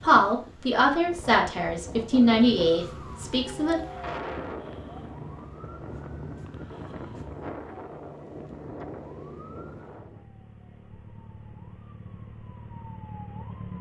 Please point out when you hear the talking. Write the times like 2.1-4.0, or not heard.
0.0-3.8.